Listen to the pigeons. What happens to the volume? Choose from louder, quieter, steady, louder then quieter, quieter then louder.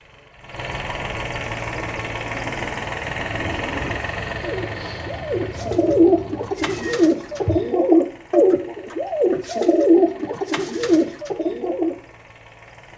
louder.